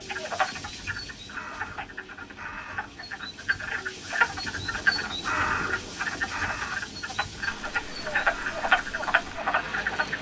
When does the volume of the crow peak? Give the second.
5 s.